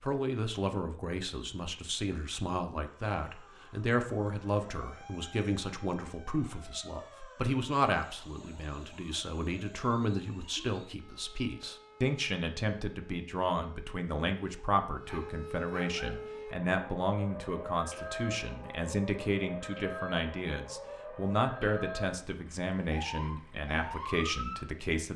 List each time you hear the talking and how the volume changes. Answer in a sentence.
The talking can be heard from 0.0 to 25.1 s, at a steady volume.